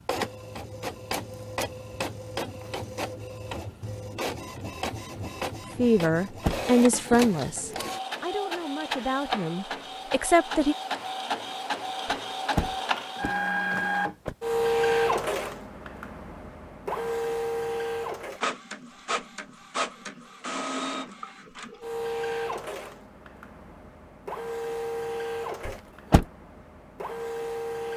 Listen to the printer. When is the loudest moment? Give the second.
15 s.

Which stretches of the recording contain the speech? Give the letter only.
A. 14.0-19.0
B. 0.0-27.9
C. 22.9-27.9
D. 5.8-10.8
D.